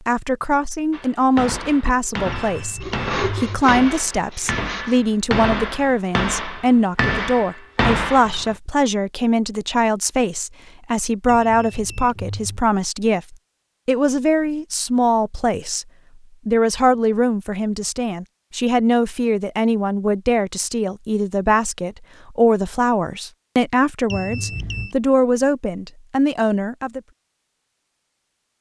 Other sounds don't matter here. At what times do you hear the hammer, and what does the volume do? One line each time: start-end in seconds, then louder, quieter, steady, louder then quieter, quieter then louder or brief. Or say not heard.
0.9-8.6 louder.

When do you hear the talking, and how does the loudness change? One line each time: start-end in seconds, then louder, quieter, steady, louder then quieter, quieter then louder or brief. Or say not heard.
0.1-15.8 steady
16.4-27.0 steady.